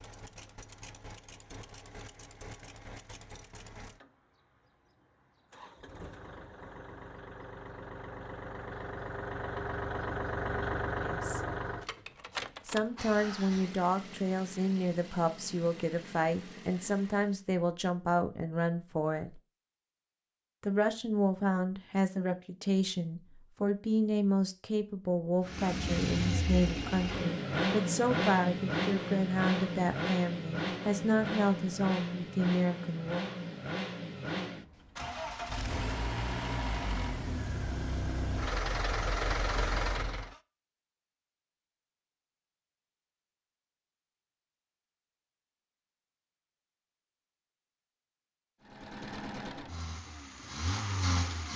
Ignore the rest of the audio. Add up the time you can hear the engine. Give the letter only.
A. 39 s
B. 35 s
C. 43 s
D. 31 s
B.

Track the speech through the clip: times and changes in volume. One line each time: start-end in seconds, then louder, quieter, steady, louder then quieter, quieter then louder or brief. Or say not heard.
11.0-11.4 brief
12.7-19.4 steady
20.6-33.2 steady.